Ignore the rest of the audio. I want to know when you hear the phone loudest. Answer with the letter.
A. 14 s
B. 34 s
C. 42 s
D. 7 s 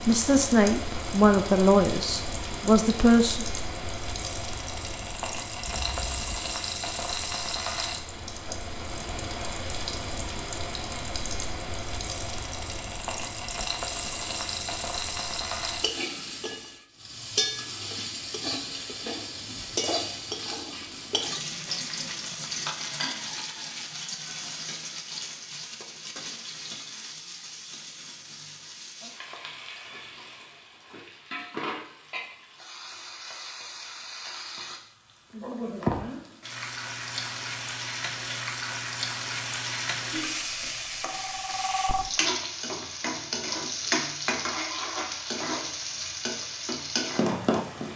C.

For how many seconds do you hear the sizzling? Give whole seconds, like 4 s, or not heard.
48 s.